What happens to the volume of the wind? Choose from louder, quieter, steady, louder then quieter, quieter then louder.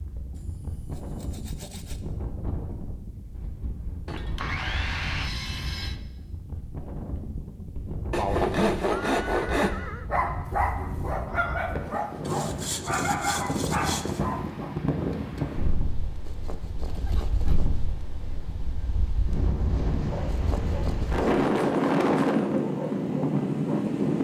louder.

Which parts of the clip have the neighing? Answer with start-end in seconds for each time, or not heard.
8.8-10.1, 16.9-17.6.